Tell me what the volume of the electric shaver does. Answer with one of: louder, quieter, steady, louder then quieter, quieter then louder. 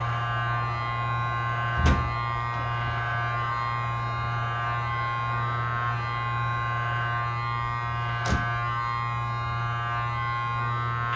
steady.